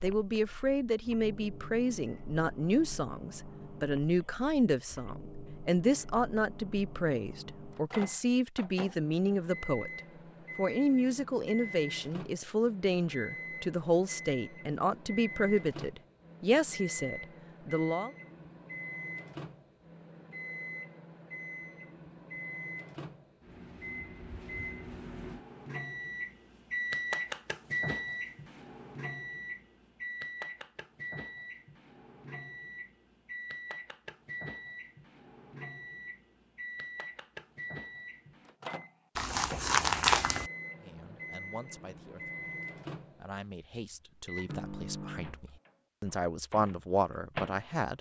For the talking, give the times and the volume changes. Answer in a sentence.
The talking can be heard from 0.0 to 9.9 s, at a steady volume; from 10.6 to 18.1 s, at a steady volume; and from 40.8 to 47.9 s, getting louder.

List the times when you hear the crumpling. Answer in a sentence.
The crumpling can be heard from 39.1 to 40.5 s.